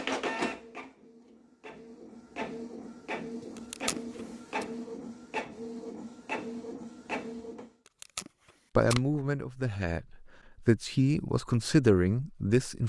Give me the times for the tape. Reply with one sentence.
The tape can be heard from 3.5 to 4.7 s and from 7.8 to 9.2 s.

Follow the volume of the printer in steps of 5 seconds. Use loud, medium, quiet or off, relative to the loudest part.
loud, loud, off.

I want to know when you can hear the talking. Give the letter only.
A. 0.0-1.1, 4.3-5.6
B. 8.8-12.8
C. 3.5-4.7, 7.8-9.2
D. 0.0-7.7
B.